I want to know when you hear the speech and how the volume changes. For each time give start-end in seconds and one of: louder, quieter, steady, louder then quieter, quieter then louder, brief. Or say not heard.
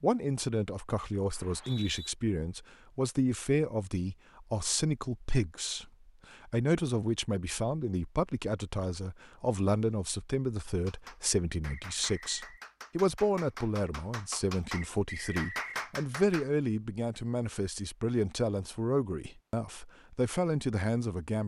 0.0-21.4 steady.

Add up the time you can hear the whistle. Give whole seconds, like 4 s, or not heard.
3 s.